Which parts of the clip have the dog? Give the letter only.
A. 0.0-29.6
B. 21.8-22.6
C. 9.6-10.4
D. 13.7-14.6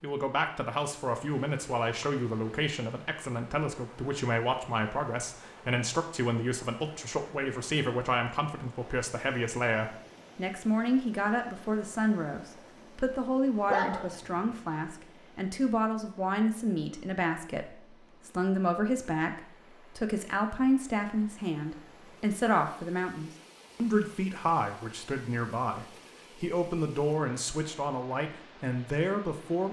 D.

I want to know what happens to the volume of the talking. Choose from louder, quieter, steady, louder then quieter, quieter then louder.
steady.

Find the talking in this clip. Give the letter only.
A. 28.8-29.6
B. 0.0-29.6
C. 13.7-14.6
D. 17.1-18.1
B.